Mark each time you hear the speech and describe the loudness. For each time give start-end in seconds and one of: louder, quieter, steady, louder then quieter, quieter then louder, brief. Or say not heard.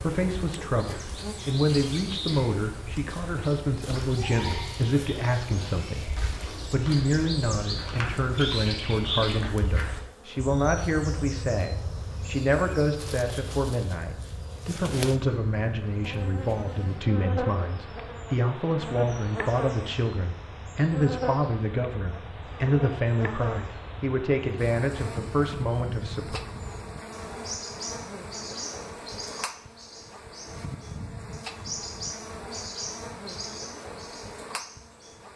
0.0-26.4 steady.